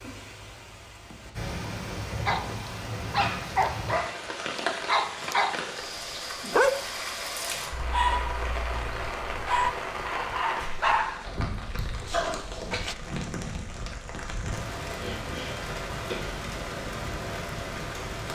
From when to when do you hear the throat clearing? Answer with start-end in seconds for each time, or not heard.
15.0-16.4.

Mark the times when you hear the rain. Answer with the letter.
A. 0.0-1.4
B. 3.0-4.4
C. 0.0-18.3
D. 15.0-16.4
C.